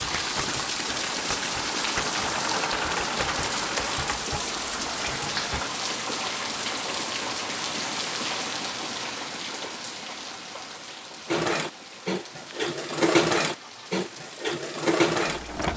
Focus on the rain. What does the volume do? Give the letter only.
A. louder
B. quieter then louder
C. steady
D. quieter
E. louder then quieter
D.